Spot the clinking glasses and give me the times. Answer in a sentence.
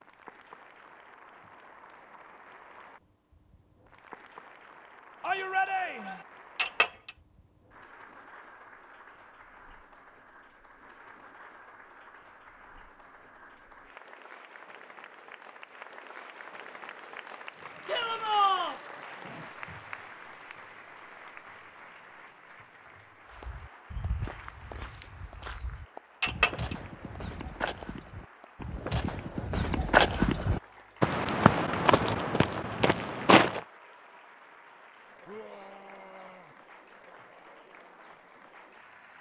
The clinking glasses can be heard from 6.5 to 7.1 s and from 26.2 to 26.8 s.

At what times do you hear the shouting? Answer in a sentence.
You can hear the shouting from 5.2 to 6.2 s, from 17.9 to 18.8 s and from 35.2 to 36.5 s.